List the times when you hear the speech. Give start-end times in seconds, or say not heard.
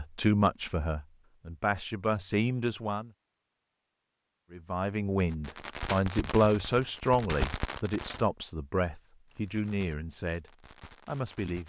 0.0-3.1, 4.5-11.6.